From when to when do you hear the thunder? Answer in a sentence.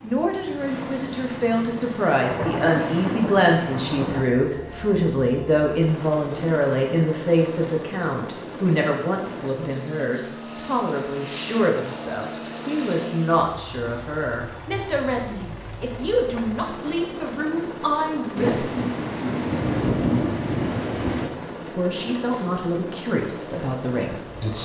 You can hear the thunder from 2.2 to 4.2 s and from 18.4 to 21.3 s.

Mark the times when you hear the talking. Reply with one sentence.
The talking can be heard from 0.0 to 18.8 s and from 21.6 to 24.5 s.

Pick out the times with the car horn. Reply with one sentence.
The car horn can't be heard in this clip.